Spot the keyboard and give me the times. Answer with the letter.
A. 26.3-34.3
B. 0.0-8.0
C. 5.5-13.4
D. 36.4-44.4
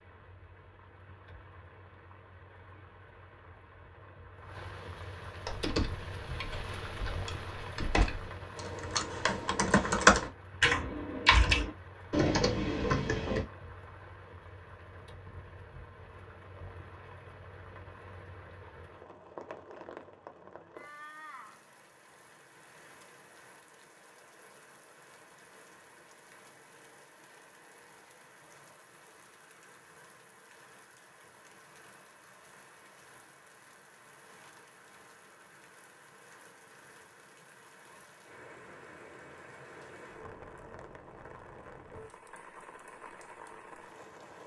C.